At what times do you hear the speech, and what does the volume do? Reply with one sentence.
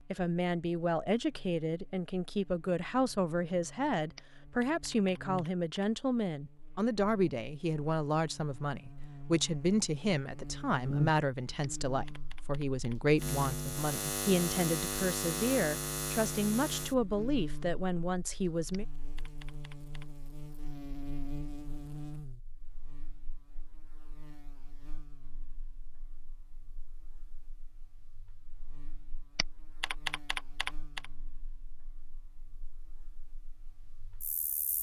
The speech can be heard from 0.1 to 18.9 s, at a steady volume.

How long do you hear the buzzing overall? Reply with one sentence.
The buzzing can be heard for 35 seconds in total.